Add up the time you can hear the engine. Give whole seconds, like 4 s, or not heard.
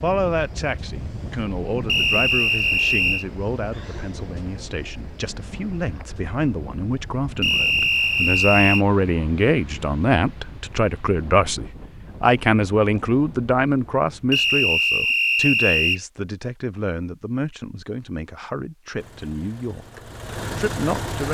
2 s.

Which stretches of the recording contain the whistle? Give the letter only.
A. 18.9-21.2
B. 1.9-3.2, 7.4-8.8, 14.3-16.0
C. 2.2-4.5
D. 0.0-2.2
B.